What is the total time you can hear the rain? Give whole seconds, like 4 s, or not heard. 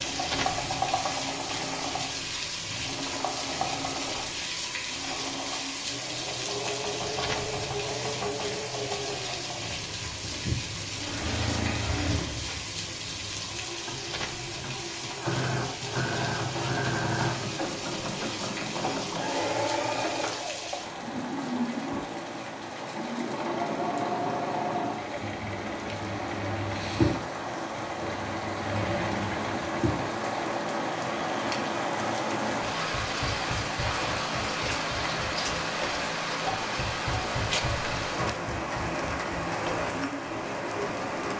41 s.